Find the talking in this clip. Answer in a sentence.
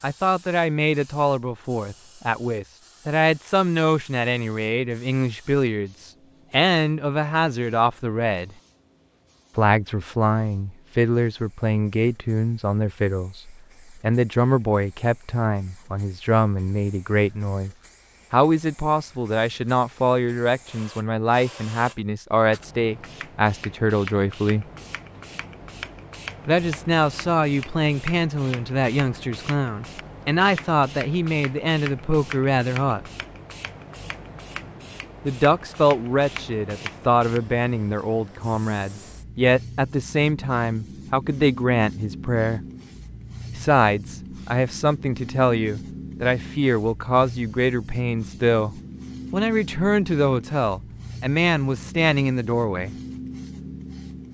You can hear the talking from 0.0 to 8.5 s, from 9.6 to 24.6 s, from 26.4 to 33.0 s, from 35.2 to 42.6 s and from 43.5 to 53.0 s.